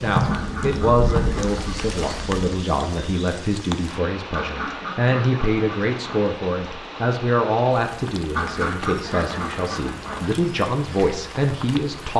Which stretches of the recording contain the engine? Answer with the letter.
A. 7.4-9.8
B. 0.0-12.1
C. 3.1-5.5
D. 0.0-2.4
D.